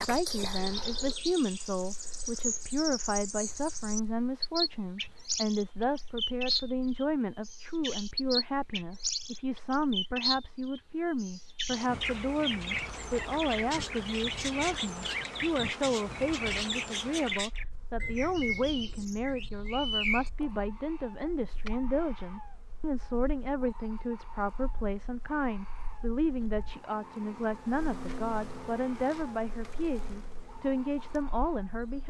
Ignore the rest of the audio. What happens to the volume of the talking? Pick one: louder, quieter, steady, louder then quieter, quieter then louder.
steady.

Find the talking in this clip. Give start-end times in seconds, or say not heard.
0.0-32.0.